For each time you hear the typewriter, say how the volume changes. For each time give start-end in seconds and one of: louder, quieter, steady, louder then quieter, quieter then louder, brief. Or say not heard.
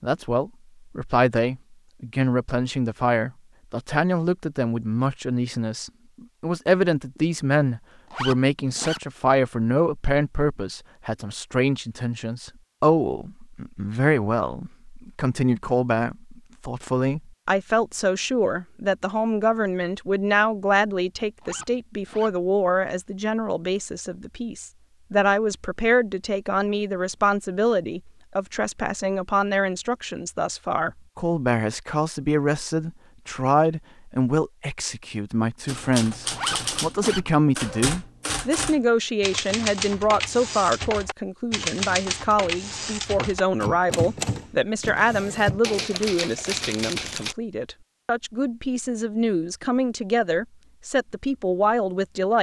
35.6-47.4 steady.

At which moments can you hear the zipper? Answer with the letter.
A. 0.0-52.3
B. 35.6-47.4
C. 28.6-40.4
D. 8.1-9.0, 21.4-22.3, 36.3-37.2
D.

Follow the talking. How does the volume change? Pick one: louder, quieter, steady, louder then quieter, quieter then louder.
steady.